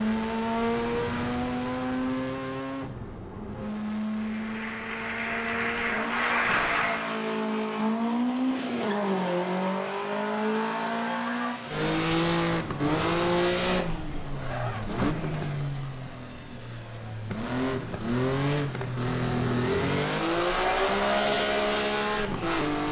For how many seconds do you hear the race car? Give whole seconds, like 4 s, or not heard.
23 s.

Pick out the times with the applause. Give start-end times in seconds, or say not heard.
4.2-7.1.